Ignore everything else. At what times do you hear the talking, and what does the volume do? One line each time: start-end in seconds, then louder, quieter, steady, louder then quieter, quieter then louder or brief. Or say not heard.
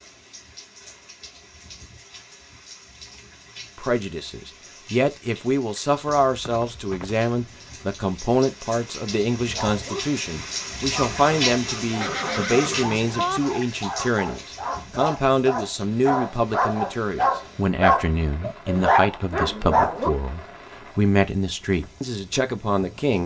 3.8-23.2 steady.